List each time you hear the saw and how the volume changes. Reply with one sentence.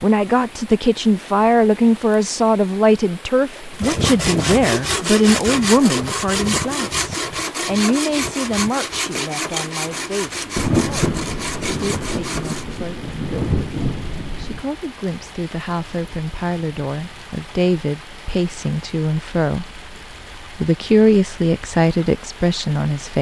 You can hear the saw from 3.8 to 12.8 s, getting quieter.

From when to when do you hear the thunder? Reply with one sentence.
The thunder can be heard from 10.6 to 14.7 s.